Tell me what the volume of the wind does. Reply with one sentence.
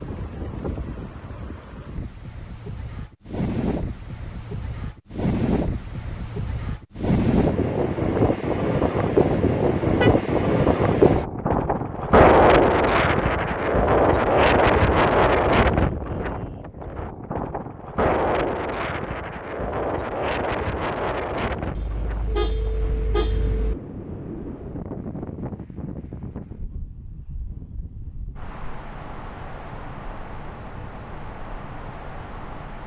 The volume of the wind goes up, then down.